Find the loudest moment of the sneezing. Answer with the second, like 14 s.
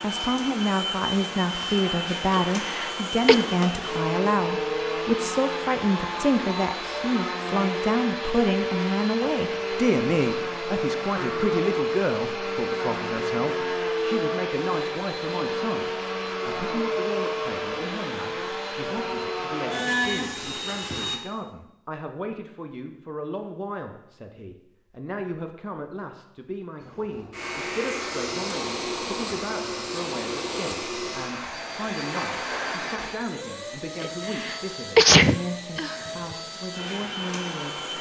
35 s.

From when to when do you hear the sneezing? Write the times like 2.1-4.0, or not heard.
2.3-3.4, 34.0-36.1.